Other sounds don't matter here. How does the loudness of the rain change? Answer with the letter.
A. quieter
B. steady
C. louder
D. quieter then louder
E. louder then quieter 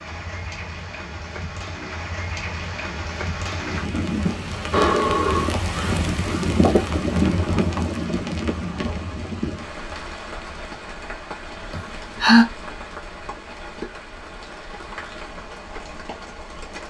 E.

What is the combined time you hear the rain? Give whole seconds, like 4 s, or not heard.
17 s.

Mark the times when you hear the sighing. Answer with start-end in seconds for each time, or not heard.
4.7-6.0, 11.7-12.4.